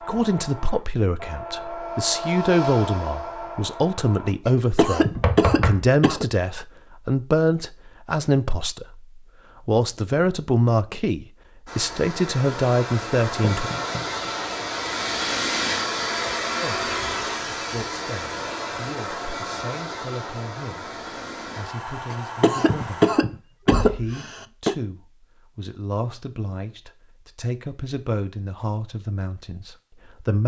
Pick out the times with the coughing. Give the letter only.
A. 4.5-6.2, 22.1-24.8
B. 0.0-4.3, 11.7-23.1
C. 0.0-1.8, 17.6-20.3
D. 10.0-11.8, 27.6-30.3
A.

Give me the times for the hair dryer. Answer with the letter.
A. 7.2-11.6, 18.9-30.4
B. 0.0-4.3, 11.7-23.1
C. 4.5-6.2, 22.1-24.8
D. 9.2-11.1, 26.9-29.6
B.